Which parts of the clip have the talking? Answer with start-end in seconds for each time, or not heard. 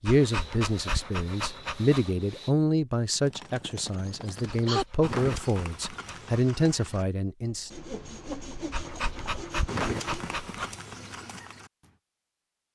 0.0-7.8.